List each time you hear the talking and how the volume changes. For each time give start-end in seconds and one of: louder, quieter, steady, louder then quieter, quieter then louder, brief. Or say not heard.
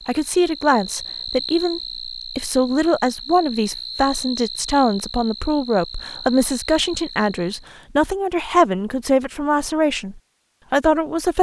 0.1-11.3 steady.